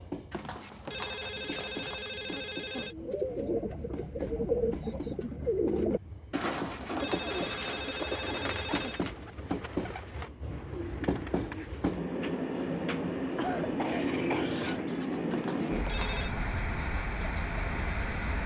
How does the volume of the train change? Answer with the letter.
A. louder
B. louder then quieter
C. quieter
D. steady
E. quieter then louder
A.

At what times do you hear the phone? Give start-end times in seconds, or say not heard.
0.3-3.0, 6.4-9.1, 15.3-16.4.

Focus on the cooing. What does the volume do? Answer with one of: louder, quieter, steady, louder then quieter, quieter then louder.
quieter.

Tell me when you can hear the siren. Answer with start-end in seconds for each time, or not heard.
not heard.